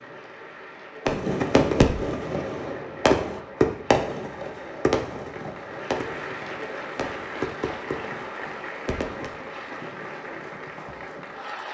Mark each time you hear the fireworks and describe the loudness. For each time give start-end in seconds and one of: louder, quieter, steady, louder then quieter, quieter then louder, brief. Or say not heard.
1.1-9.3 quieter.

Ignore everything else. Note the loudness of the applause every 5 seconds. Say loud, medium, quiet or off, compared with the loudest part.
medium, loud, loud.